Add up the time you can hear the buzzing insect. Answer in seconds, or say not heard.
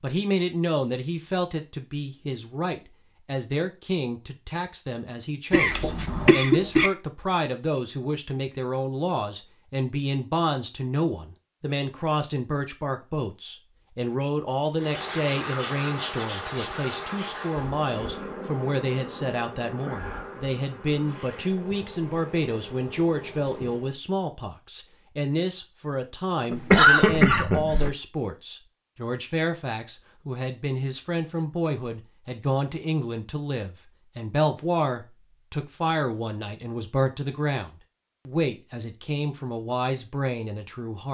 9 s.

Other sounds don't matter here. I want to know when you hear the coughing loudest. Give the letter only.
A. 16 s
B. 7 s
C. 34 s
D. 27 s
D.